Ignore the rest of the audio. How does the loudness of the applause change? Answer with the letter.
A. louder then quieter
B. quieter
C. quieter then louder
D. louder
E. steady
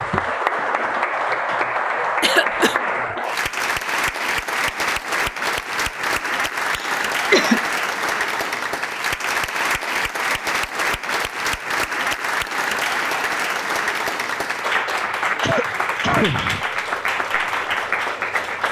E.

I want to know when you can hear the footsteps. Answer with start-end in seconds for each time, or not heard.
not heard.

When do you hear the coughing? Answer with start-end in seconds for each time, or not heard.
2.2-2.8, 6.8-7.6, 15.2-16.6.